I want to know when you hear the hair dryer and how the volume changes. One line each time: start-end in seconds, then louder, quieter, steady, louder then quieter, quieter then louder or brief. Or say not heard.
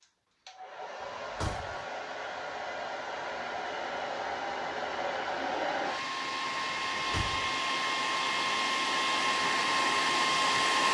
0.0-10.8 louder.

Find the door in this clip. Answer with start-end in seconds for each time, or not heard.
1.0-1.9, 7.0-7.6.